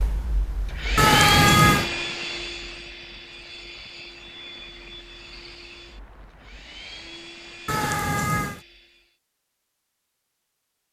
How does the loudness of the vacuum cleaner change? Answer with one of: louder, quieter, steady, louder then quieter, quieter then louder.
quieter.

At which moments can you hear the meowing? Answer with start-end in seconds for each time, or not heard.
0.9-1.9, 7.7-8.6.